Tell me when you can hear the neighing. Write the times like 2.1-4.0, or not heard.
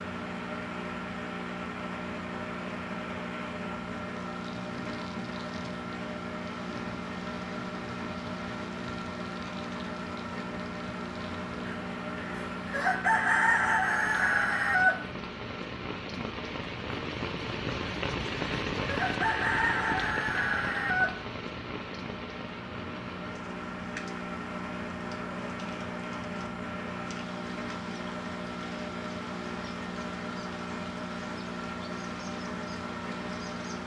not heard.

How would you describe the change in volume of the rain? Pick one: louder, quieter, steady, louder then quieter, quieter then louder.
louder then quieter.